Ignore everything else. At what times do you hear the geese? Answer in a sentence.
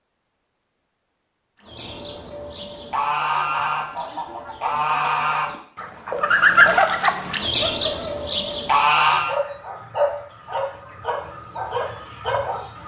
The geese can be heard from 1.6 to 9.3 s.